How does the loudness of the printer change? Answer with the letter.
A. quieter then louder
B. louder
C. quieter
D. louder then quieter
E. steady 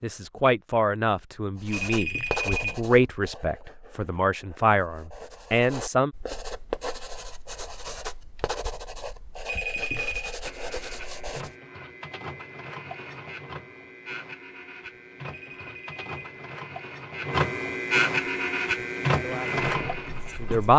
B.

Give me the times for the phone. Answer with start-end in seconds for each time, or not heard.
1.7-2.9, 9.4-10.3, 15.2-16.4.